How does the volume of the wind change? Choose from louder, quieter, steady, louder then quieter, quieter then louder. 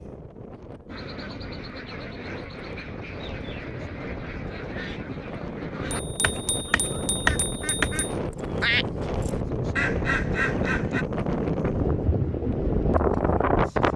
louder.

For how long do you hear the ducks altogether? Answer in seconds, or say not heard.
10 s.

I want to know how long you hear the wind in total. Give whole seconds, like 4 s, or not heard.
14 s.